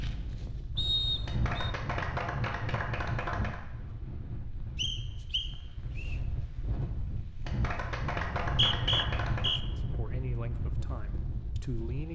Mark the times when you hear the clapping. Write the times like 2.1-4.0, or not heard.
1.2-3.6, 7.5-9.6.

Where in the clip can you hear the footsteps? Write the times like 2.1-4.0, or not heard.
not heard.